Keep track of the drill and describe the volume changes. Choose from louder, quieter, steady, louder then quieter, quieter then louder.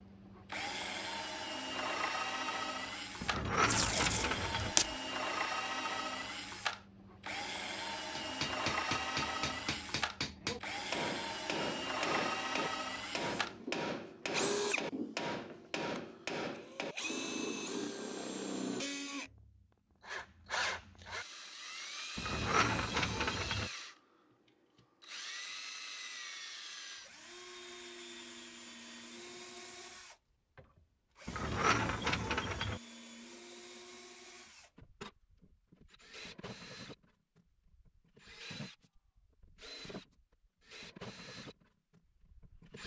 quieter.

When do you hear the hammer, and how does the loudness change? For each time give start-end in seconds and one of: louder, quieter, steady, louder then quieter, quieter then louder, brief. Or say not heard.
8.2-17.1 steady.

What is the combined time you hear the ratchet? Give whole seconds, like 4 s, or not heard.
5 s.